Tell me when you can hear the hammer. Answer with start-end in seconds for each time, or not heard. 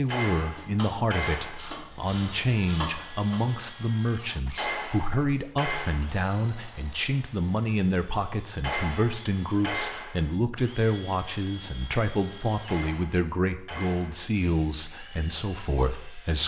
0.1-1.8, 4.5-6.0, 8.6-10.3, 12.7-14.3.